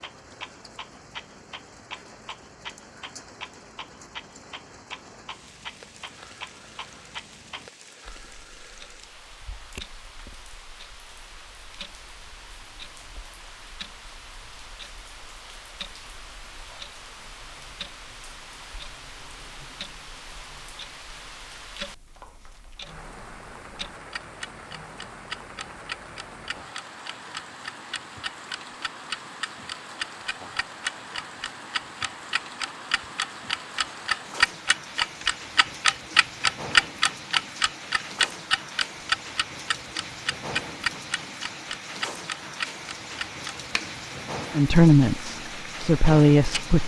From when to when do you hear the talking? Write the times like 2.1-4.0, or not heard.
44.5-46.8.